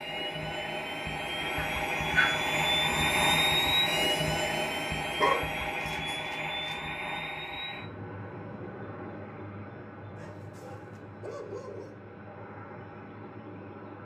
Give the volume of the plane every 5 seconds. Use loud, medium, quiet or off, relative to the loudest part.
loud, medium, quiet.